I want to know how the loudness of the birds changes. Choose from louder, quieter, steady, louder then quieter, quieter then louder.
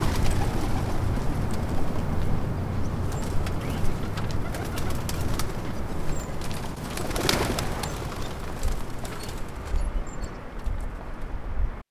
quieter.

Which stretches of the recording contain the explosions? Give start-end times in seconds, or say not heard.
7.3-7.9.